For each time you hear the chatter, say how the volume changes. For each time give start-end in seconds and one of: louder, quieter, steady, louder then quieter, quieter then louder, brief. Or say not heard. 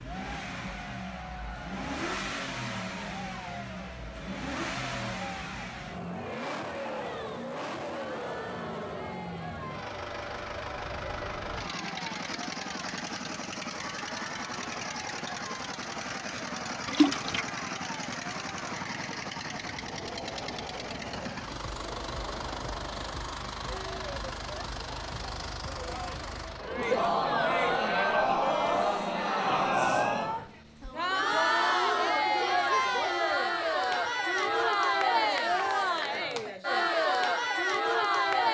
0.0-38.4 louder.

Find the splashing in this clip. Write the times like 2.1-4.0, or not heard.
16.9-17.4.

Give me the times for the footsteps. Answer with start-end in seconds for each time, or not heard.
not heard.